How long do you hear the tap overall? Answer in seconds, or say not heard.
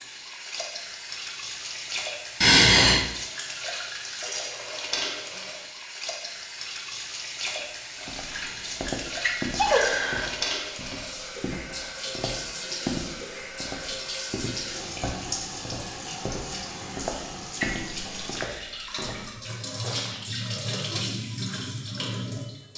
23 s.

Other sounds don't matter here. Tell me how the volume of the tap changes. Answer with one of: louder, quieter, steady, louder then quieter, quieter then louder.
steady.